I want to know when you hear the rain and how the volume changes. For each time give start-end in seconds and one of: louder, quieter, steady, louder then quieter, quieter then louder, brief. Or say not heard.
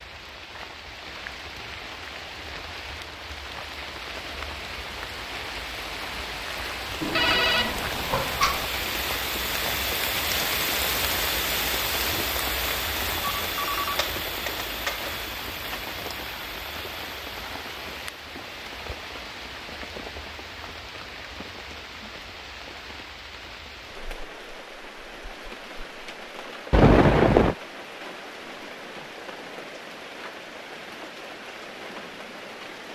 0.0-32.8 louder then quieter.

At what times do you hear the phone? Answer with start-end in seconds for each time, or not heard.
7.0-8.7, 13.4-15.1, 26.7-27.6.